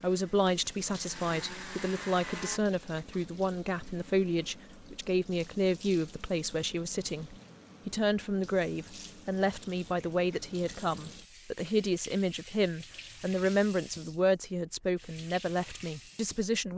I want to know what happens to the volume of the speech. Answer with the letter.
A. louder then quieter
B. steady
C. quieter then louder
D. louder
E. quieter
B.